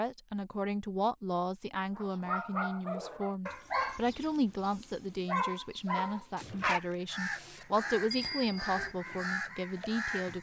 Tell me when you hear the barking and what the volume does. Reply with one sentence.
You can hear the barking from 1.9 to 7.7 s, getting quieter then louder.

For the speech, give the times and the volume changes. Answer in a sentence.
You can hear the speech from 0.0 to 10.3 s, at a steady volume.